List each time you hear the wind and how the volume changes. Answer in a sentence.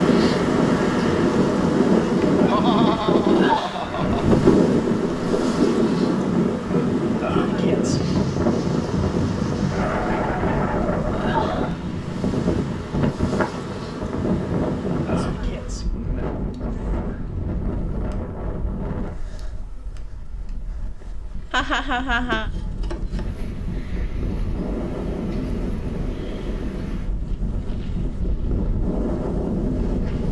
The wind can be heard from 0.0 to 30.2 s, getting quieter then louder.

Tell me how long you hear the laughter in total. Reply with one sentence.
The laughter can be heard for 3 seconds in total.